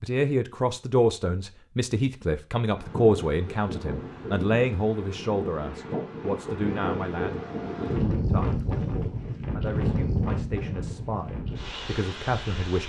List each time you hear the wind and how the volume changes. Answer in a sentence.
The wind can be heard from 2.8 to 12.8 s, getting louder then quieter.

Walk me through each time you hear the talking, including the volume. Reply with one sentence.
You can hear the talking from 0.0 to 12.8 s, getting quieter.